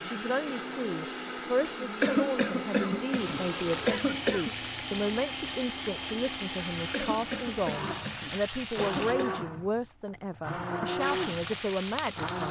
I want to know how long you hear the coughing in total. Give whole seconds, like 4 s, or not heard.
5 s.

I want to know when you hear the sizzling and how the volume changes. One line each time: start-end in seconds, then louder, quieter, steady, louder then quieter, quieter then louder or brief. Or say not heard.
3.1-9.2 steady
10.9-12.4 brief.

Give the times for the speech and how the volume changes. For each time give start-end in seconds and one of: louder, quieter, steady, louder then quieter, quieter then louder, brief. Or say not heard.
0.1-12.4 steady.